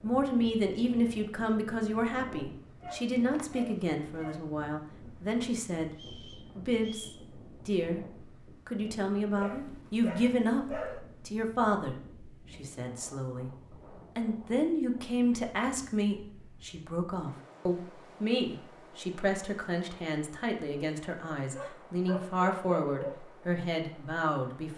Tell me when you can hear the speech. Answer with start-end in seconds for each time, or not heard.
0.0-6.0, 6.5-8.1, 8.7-13.5, 14.2-24.7.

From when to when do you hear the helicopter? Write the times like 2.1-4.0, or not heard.
not heard.